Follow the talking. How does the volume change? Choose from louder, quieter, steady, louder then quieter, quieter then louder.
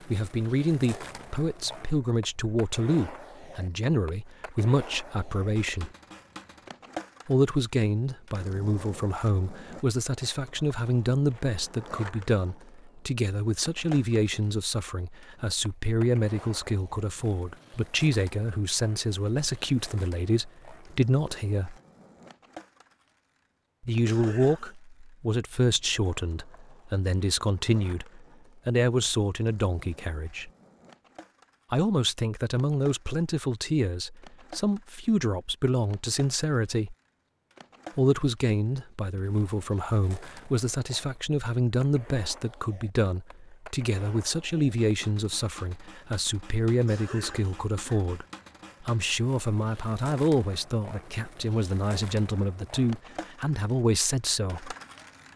steady.